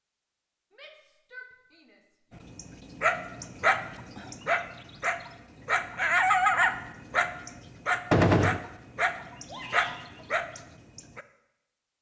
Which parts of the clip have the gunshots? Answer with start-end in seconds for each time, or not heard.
8.1-8.6.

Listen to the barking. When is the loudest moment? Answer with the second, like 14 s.
6 s.